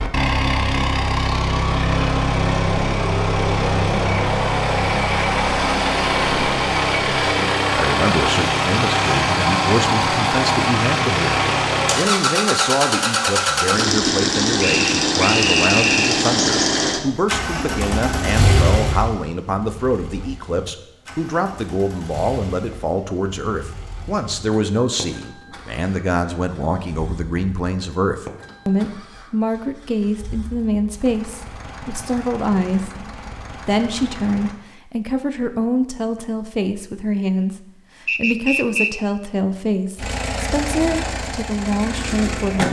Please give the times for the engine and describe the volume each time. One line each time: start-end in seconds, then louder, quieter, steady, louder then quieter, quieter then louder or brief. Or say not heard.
0.0-34.6 quieter
40.0-42.6 brief.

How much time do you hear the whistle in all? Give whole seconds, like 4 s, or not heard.
3 s.